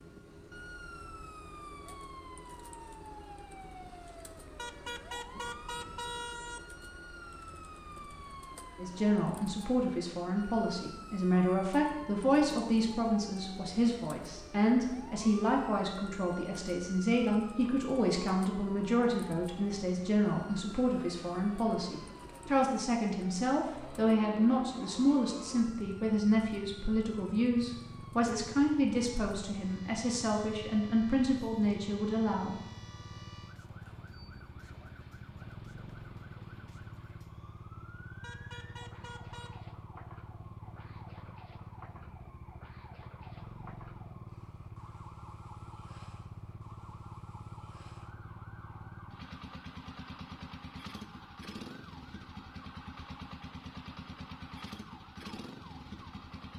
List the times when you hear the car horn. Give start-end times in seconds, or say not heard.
4.5-6.6, 38.2-39.6.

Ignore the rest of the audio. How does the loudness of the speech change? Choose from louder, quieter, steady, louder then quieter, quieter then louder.
steady.